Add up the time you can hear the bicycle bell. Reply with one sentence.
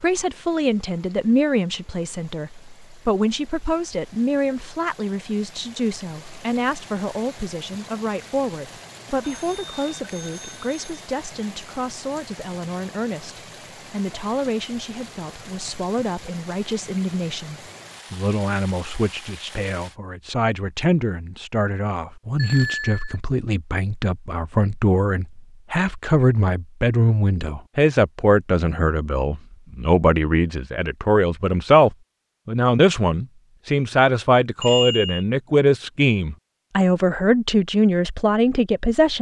The bicycle bell can be heard for 3 seconds in total.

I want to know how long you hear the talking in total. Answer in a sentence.
The talking can be heard for 39 seconds in total.